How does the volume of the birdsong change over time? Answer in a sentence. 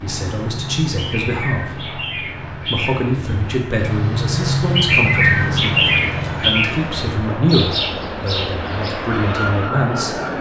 The loudness of the birdsong goes up, then down.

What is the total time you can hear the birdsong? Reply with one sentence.
The birdsong can be heard for 10 seconds in total.